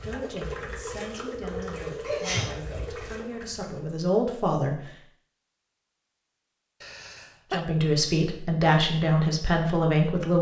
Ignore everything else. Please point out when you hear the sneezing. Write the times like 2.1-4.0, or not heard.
2.0-3.0, 6.8-7.6.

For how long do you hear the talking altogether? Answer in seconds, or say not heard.
8 s.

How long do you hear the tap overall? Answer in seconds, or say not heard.
4 s.